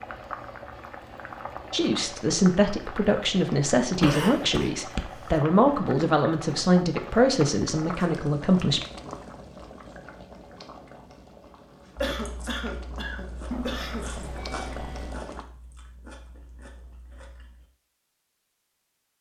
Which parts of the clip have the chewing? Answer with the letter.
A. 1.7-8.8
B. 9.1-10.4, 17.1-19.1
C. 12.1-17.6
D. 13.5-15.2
C.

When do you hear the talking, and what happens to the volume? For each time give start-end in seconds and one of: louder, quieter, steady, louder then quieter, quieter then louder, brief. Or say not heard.
1.7-8.8 steady.